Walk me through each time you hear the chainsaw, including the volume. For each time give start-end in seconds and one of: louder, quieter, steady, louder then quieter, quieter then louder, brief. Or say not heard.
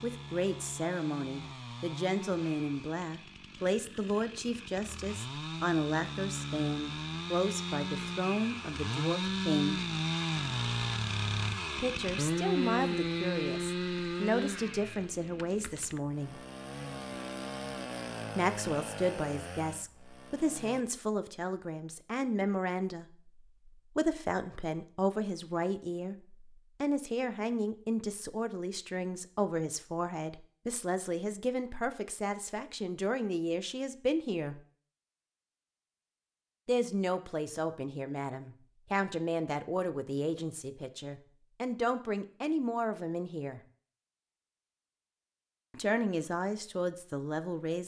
0.0-20.9 louder then quieter.